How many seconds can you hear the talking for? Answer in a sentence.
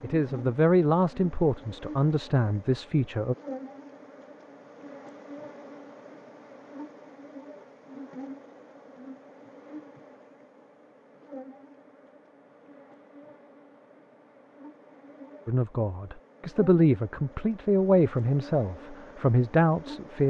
The talking can be heard for 8 seconds in total.